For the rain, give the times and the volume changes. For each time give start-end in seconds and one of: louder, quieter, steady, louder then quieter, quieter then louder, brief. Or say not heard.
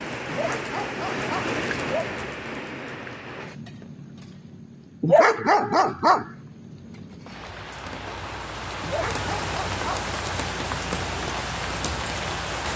0.0-12.7 quieter then louder.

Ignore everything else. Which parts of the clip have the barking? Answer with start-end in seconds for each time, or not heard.
0.2-2.1, 5.0-6.2, 8.8-10.1.